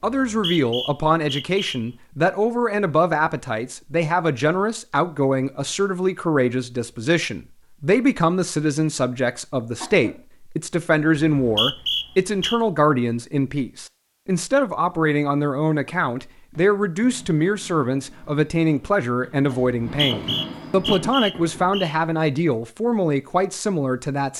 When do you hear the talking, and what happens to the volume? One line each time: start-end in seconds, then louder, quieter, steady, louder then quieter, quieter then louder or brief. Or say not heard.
0.0-24.3 steady.